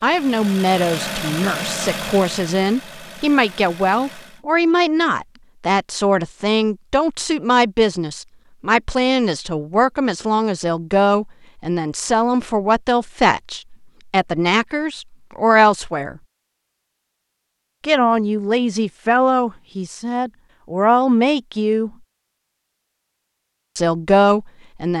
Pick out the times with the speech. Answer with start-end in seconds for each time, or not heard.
0.0-16.2, 17.8-21.9, 23.8-24.9.